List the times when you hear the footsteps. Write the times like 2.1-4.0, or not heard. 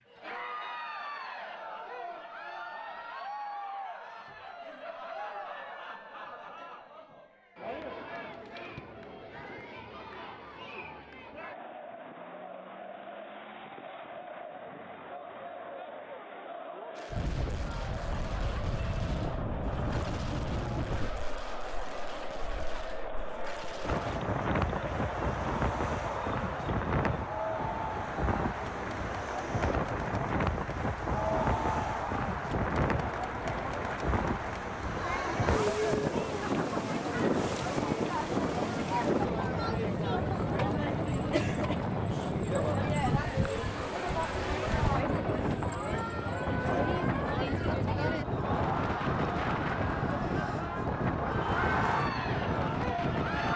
not heard.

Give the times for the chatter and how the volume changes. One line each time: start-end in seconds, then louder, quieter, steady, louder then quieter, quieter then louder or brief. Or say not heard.
0.1-53.5 louder.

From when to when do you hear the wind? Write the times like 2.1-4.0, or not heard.
17.1-53.5.